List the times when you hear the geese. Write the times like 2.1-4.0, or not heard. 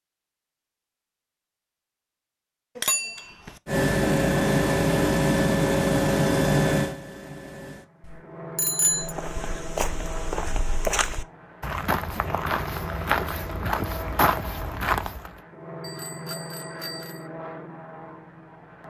not heard.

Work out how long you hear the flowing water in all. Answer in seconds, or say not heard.
not heard.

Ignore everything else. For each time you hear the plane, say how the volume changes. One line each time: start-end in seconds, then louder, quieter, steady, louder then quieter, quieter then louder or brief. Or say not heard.
3.6-18.8 quieter.